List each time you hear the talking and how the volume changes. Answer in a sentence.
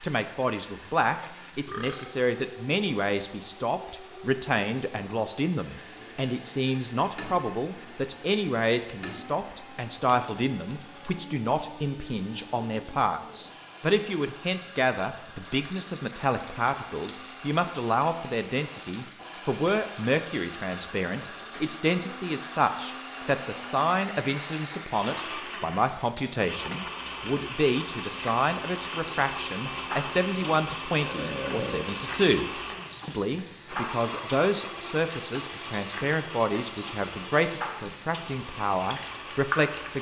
The talking can be heard from 0.0 to 39.9 s, at a steady volume.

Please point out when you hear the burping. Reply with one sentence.
The burping can be heard from 1.6 to 2.1 s and from 31.0 to 31.9 s.